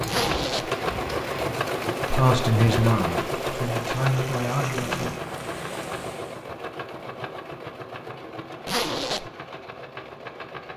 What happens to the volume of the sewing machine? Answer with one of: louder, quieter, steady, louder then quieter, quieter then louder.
quieter.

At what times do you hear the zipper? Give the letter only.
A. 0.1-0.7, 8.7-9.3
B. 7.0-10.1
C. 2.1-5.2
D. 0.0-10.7
A.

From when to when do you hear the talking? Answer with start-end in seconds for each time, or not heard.
2.1-5.2.